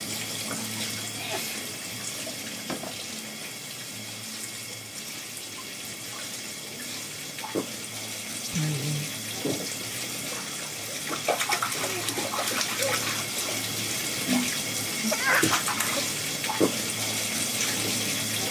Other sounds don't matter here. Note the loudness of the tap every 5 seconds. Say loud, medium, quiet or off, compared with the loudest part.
medium, medium, loud, loud.